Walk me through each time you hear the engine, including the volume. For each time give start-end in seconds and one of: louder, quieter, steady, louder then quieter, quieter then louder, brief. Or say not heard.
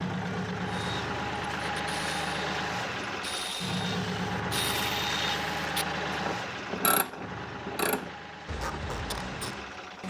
0.0-10.0 quieter.